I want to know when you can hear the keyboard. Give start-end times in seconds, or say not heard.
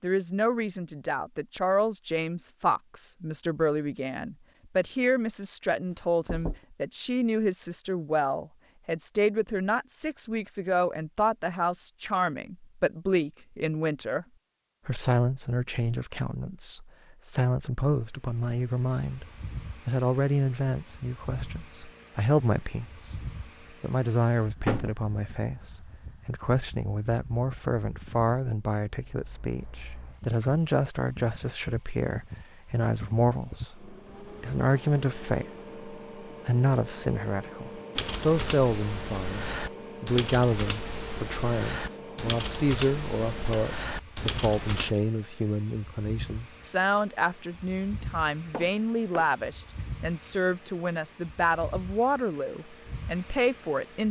38.0-45.0.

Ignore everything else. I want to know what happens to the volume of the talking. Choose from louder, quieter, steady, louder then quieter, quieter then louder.
steady.